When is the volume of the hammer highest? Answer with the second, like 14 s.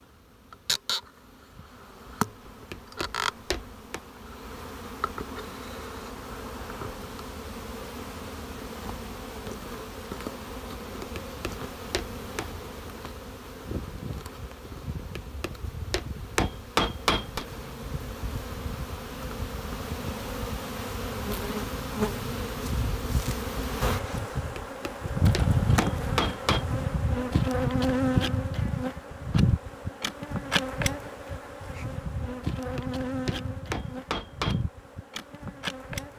17 s.